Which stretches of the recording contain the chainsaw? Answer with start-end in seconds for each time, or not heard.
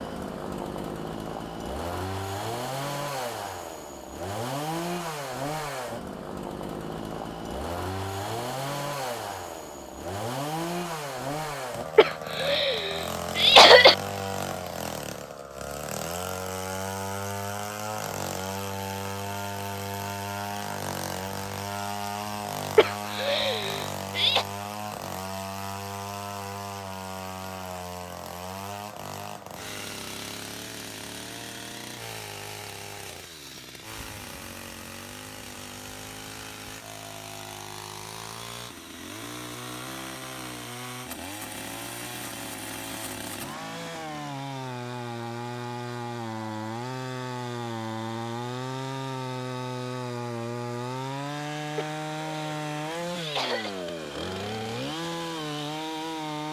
0.0-56.4.